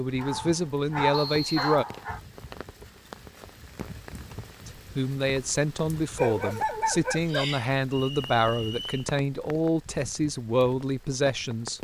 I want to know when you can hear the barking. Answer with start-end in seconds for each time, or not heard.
0.1-2.2, 6.2-7.7.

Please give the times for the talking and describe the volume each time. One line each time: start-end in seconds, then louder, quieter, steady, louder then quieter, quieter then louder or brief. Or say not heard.
0.0-1.9 brief
4.7-11.7 steady.